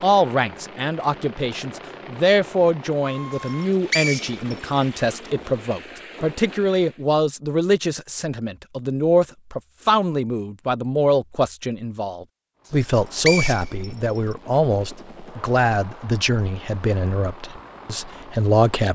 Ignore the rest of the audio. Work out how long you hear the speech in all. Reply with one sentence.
The speech can be heard for 19 seconds in total.